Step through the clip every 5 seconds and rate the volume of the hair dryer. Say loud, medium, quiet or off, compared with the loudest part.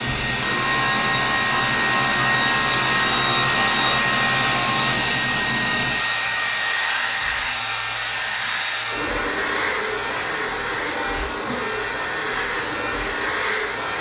loud, loud, medium.